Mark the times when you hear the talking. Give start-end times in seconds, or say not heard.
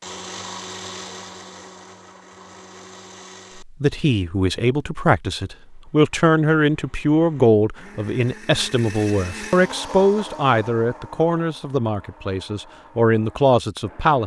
3.6-14.2.